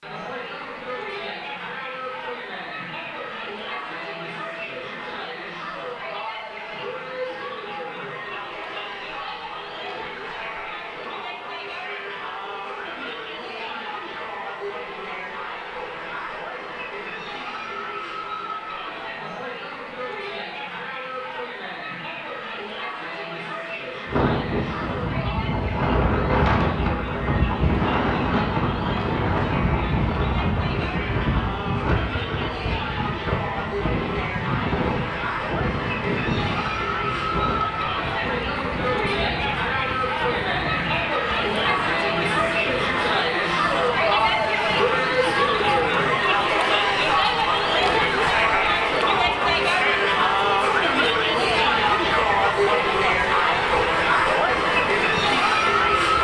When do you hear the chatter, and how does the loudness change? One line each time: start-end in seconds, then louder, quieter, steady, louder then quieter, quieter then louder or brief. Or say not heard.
0.0-56.1 louder.